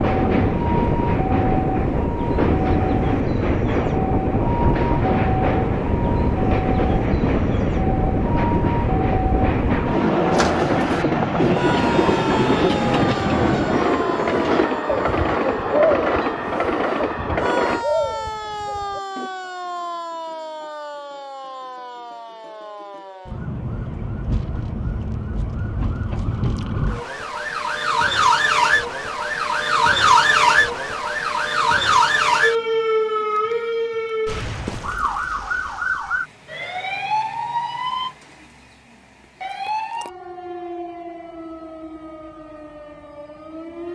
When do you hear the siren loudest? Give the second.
30 s.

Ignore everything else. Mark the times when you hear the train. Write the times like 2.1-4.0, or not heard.
0.0-17.9.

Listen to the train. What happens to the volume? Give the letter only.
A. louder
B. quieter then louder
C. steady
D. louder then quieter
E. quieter
C.